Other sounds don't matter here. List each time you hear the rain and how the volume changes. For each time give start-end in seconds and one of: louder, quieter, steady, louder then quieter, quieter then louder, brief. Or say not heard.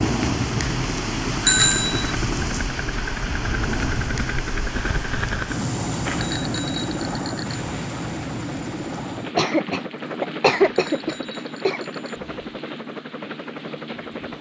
0.0-14.3 quieter.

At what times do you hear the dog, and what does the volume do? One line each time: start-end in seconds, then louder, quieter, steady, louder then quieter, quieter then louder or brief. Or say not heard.
not heard.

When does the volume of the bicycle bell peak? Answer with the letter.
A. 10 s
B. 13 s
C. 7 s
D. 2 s
D.